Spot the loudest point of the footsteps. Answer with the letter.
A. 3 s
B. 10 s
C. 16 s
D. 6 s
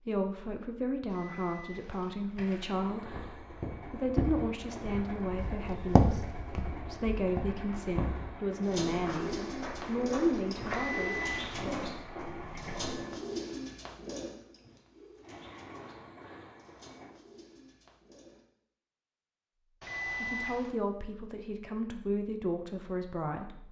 D.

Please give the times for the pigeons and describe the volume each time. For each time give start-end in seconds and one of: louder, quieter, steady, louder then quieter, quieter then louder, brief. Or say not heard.
8.6-18.4 quieter.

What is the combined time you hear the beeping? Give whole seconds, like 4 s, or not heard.
3 s.